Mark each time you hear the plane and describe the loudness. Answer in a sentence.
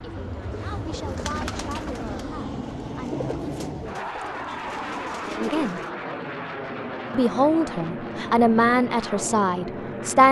You can hear the plane from 0.0 to 10.2 s, at a steady volume.